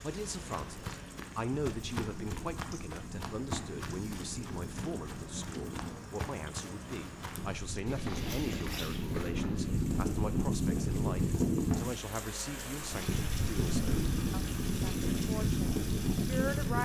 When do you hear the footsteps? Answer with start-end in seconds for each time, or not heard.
0.0-9.7.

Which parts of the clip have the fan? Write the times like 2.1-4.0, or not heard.
0.0-16.8.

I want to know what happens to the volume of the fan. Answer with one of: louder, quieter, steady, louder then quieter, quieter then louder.
louder.